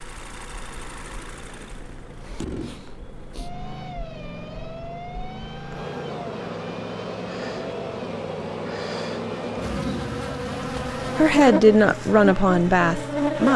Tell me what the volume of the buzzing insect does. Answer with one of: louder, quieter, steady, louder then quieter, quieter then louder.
louder.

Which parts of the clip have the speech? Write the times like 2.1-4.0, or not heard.
11.2-13.5.